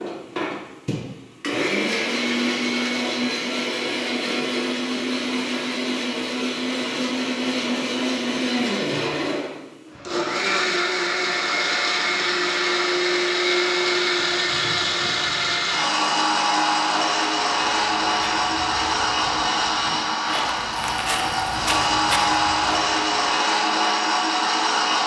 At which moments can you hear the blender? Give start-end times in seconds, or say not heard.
0.0-25.0.